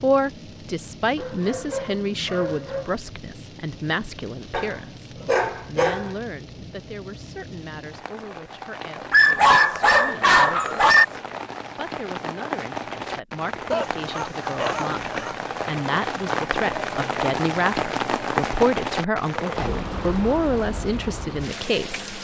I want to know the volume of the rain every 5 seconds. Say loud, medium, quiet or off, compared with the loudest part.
quiet, quiet, medium, loud, medium.